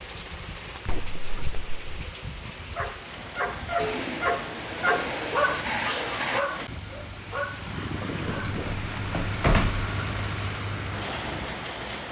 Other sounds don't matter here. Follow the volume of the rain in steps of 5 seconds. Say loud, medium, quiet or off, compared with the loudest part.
medium, loud, loud.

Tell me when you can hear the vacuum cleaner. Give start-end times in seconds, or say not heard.
3.8-6.5.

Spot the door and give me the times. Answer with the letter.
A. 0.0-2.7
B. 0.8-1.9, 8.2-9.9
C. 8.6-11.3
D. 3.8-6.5
B.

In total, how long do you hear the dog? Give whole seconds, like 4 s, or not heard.
6 s.